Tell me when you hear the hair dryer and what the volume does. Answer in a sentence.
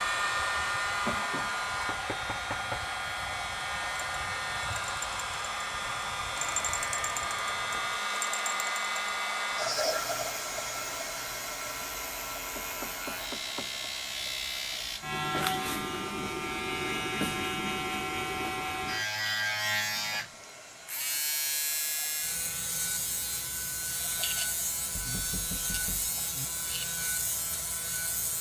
The hair dryer can be heard from 0.0 to 28.3 s, getting quieter.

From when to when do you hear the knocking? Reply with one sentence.
The knocking can be heard from 1.1 to 2.8 s, from 12.6 to 13.8 s and from 24.9 to 26.4 s.